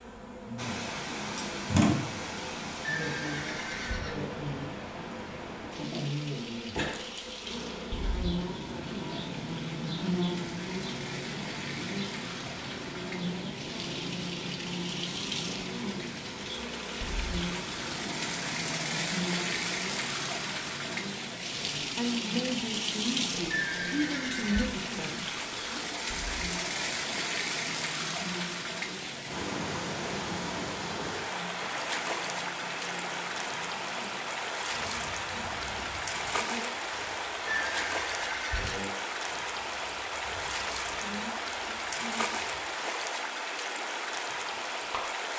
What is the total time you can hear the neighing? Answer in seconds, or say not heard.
4 s.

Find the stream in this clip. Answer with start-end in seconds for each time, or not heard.
0.0-45.3.